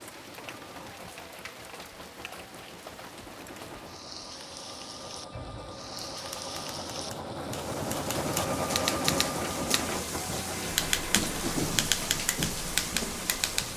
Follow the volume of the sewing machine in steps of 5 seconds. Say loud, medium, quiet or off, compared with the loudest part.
quiet, loud, medium.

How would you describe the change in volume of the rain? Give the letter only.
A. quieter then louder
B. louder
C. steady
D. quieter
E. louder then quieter
B.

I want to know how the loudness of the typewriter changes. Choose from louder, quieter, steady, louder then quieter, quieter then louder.
louder.